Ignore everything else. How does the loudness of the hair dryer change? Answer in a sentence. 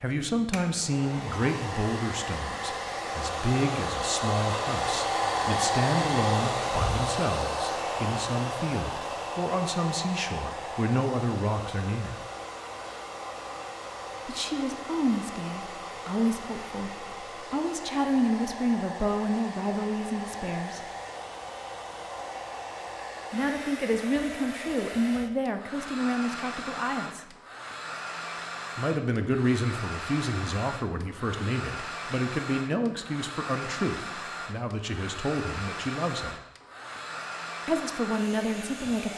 The volume of the hair dryer goes down.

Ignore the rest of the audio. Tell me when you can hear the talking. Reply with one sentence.
The talking can be heard from 0.0 to 12.2 s, from 14.2 to 20.8 s, from 23.3 to 27.2 s, from 28.8 to 36.4 s and from 37.6 to 39.1 s.